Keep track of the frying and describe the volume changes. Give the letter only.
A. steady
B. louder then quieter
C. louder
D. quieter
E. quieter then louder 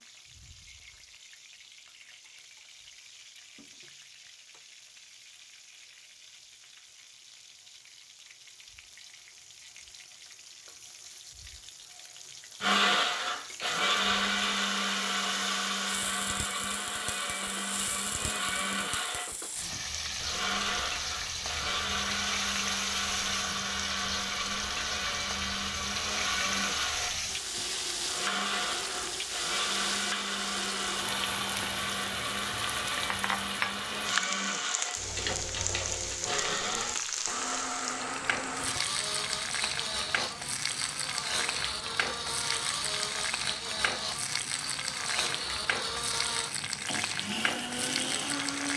C.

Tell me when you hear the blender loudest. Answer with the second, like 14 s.
13 s.